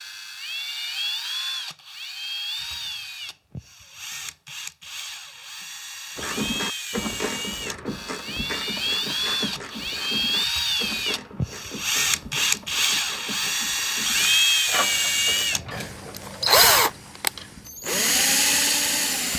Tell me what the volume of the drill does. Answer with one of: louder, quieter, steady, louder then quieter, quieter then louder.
louder.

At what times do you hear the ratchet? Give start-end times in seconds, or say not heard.
6.2-16.3.